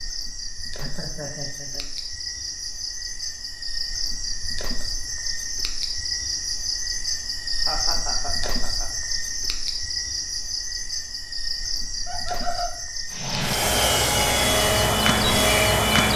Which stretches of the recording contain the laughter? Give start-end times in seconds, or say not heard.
0.8-1.9, 7.7-8.8, 12.1-12.7.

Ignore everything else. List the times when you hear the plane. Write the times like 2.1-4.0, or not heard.
13.1-16.1.